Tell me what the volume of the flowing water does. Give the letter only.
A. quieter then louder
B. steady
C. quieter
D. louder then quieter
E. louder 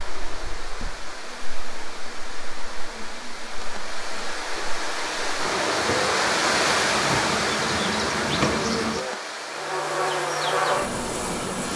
D.